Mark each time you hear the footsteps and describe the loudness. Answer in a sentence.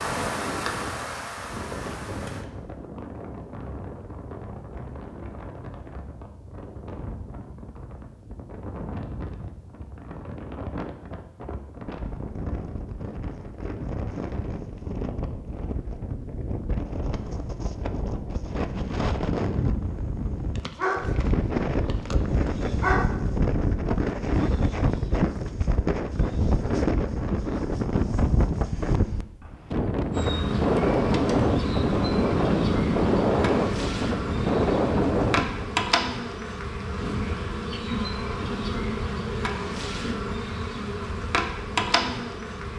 You can't hear the footsteps here.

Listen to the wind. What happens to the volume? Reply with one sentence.
The loudness of the wind goes up.